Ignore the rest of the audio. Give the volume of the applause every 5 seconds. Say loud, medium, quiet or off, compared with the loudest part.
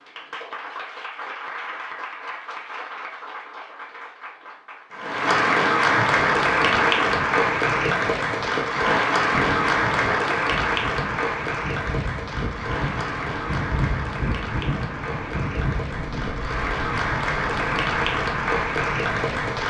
quiet, loud, medium, medium.